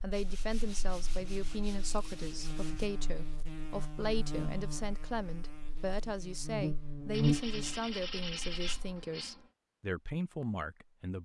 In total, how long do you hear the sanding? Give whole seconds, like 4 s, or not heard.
5 s.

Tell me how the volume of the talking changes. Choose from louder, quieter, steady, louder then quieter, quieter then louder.
steady.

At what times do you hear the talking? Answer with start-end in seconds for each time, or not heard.
0.0-11.1.